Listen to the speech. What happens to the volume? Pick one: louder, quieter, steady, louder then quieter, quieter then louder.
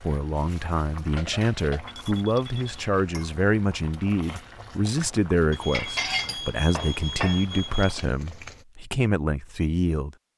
steady.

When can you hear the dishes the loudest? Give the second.
6 s.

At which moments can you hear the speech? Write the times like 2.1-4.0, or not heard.
0.0-10.2.